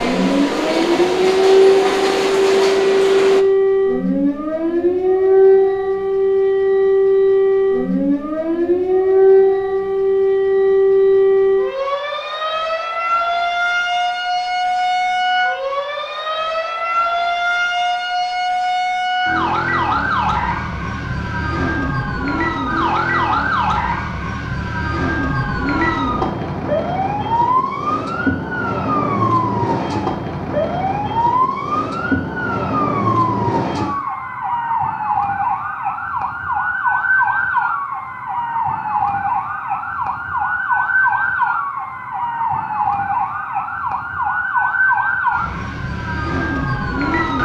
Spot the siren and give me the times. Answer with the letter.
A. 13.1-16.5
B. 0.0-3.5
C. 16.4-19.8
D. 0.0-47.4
D.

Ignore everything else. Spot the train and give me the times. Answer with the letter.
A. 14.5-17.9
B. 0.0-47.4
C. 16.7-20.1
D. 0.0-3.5
D.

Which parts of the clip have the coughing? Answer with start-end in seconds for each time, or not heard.
not heard.